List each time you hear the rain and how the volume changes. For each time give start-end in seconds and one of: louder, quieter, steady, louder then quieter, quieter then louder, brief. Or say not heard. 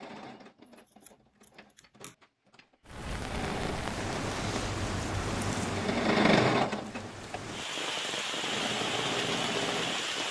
2.9-10.2 quieter then louder.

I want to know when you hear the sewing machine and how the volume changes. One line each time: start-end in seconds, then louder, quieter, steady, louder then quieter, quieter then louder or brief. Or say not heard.
0.0-10.2 louder then quieter.